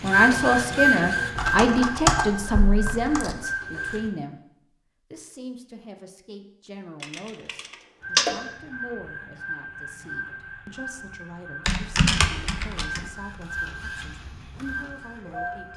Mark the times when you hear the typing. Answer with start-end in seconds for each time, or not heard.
1.4-3.4, 7.0-8.3, 11.7-13.1.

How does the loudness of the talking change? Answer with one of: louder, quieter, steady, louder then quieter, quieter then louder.
quieter.